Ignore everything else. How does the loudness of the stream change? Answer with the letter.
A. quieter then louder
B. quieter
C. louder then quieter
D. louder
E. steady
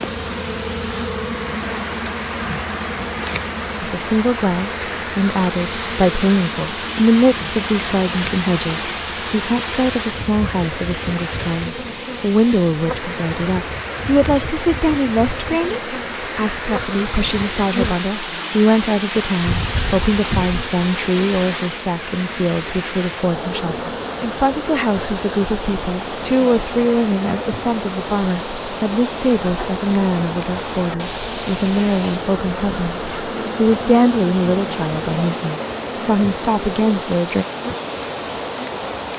E.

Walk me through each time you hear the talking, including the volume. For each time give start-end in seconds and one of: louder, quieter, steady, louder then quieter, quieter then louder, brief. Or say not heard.
3.8-37.5 steady.